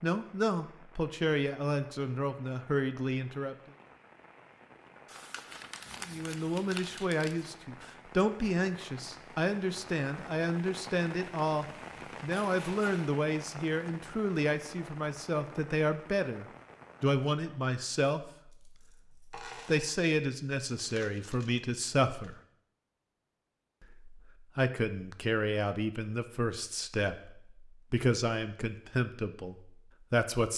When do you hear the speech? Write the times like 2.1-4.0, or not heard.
0.0-3.5, 6.0-22.4, 23.8-30.5.